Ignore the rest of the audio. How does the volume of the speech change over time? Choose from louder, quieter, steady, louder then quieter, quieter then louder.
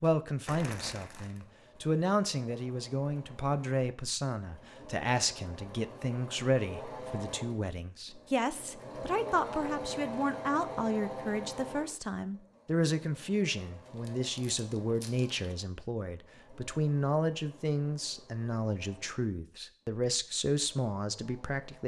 steady.